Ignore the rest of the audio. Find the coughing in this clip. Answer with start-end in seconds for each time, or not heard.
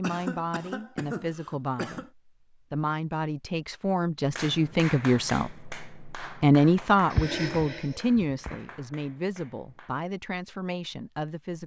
0.0-2.1, 7.1-8.6.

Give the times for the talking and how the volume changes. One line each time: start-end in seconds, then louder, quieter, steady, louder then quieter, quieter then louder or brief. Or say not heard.
0.0-11.6 louder then quieter.